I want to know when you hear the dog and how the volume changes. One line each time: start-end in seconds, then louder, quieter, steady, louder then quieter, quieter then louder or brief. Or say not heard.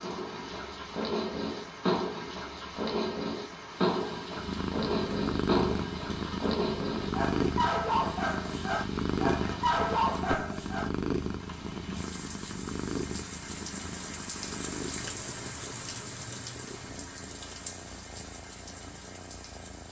0.0-10.9 steady.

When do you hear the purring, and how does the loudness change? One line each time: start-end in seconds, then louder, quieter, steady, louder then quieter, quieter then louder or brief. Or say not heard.
4.3-19.8 quieter.